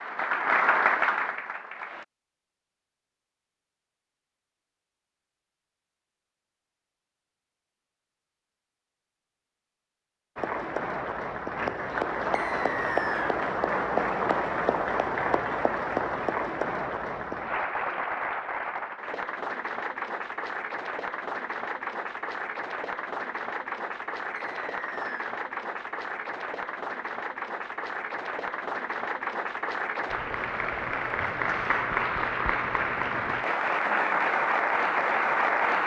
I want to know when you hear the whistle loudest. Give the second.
13 s.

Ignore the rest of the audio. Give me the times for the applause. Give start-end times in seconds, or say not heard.
0.0-2.0, 10.3-35.8.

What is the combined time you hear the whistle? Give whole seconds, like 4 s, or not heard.
2 s.